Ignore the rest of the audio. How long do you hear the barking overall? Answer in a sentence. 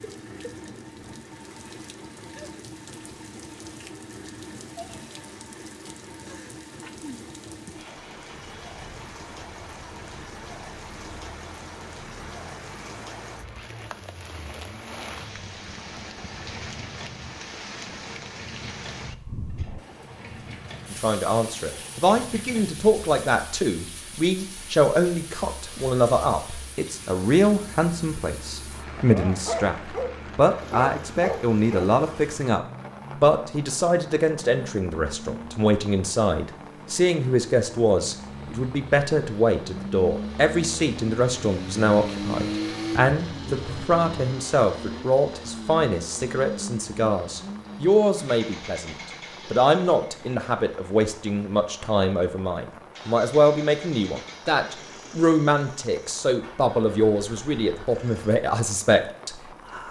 The barking can be heard for 3 seconds in total.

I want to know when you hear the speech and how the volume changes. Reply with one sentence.
You can hear the speech from 20.9 to 59.8 s, at a steady volume.